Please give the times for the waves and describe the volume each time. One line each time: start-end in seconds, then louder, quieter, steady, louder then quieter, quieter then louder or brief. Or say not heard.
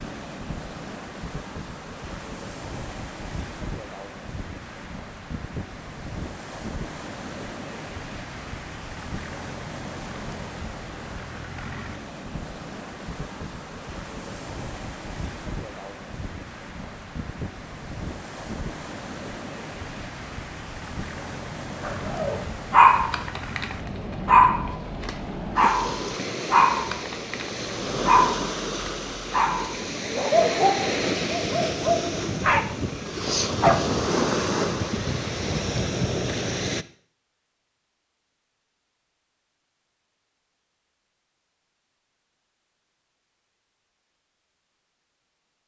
0.0-36.9 louder.